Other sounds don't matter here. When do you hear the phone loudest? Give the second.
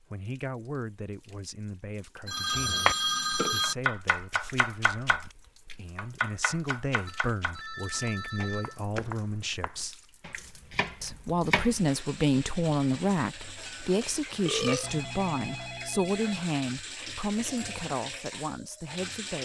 3 s.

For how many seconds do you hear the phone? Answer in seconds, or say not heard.
5 s.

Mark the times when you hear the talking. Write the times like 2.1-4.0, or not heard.
0.0-2.9, 3.5-9.9, 11.0-19.3.